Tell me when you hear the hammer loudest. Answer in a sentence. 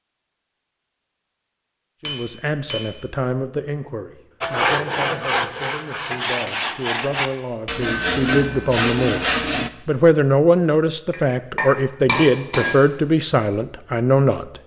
The volume of the hammer peaks at 12 seconds.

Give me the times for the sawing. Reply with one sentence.
The sawing can be heard from 4.4 to 9.7 s.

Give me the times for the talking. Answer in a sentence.
The talking can be heard from 2.0 to 14.6 s.